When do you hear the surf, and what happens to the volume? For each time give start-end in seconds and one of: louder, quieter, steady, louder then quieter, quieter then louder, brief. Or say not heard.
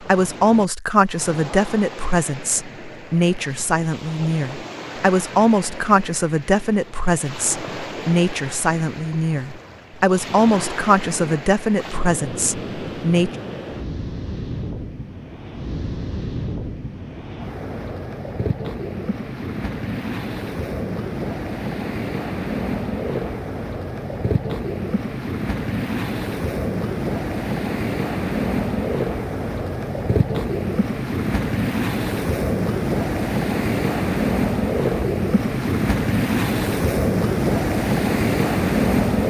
0.0-39.2 louder.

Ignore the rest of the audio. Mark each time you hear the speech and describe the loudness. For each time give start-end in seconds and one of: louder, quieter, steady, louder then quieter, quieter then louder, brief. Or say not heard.
0.0-13.3 steady.